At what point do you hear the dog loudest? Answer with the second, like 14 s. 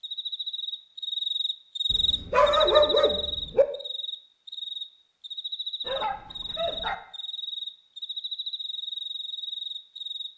3 s.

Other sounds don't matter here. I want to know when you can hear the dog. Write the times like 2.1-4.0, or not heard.
1.9-3.6, 5.8-7.0.